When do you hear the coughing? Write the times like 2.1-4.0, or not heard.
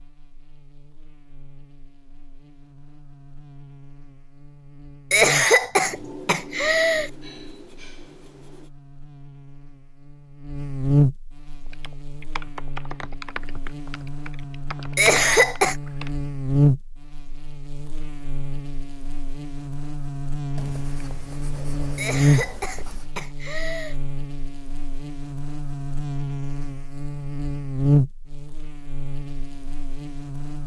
5.1-7.1, 14.9-15.8, 21.9-23.9.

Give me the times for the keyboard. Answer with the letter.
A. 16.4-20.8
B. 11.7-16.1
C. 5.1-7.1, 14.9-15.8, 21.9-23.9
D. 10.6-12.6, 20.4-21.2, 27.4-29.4
B.